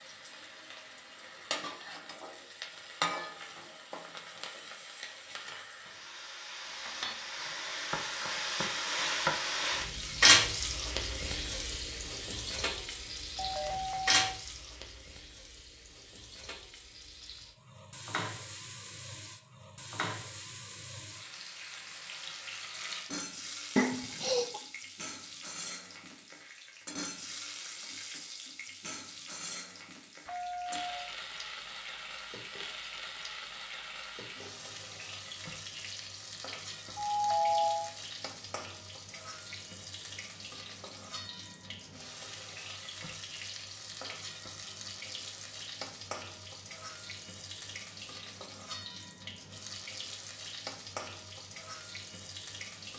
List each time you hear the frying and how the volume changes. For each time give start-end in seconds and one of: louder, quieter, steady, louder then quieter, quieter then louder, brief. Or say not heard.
0.0-52.9 quieter.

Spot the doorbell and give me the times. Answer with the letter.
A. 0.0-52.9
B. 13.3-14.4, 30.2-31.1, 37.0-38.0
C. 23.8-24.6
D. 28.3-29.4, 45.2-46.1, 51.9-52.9
B.